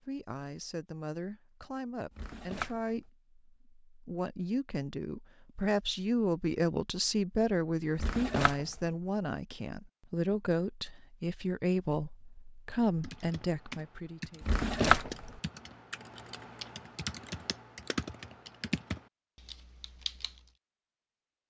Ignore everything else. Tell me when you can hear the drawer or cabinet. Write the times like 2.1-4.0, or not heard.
2.1-3.0, 8.0-8.8, 14.4-15.3.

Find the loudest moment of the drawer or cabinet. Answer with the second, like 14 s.
15 s.